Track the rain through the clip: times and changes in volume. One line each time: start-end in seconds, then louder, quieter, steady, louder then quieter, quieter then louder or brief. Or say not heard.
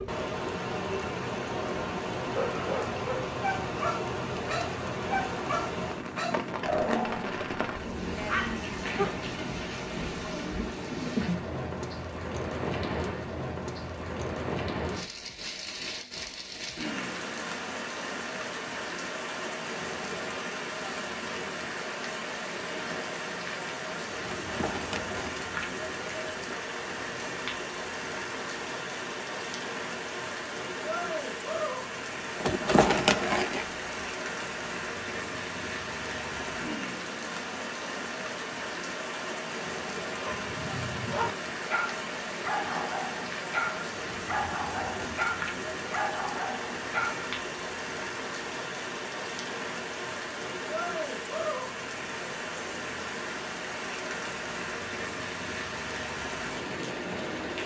0.0-57.6 steady.